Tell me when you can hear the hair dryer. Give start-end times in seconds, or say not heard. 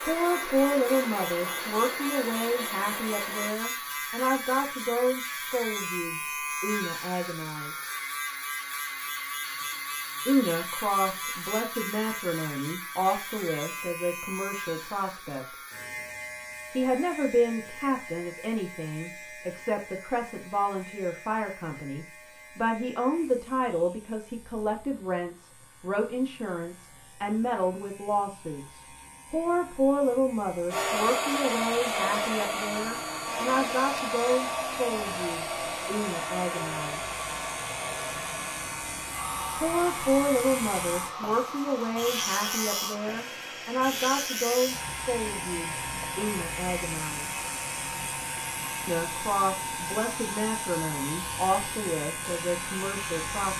0.0-3.5, 30.7-53.4.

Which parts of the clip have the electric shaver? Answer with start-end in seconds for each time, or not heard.
0.0-53.5.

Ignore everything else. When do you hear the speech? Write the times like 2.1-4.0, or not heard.
0.0-7.8, 10.2-15.6, 16.7-37.0, 39.5-47.4, 48.9-53.5.